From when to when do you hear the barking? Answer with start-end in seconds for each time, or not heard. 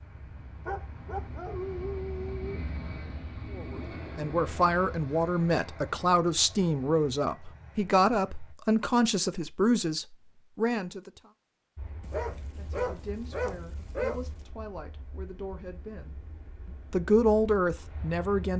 0.7-2.6, 12.0-14.4.